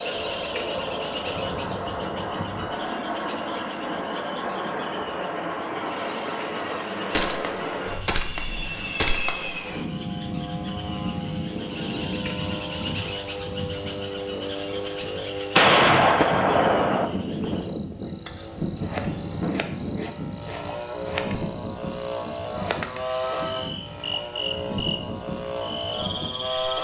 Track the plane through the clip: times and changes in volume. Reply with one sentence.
The plane can be heard from 0.0 to 26.7 s, at a steady volume.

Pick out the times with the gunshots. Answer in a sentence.
The gunshots can be heard from 7.1 to 9.6 s and from 15.6 to 17.1 s.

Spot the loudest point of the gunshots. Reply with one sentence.
The loudest moment of the gunshots is at 16 seconds.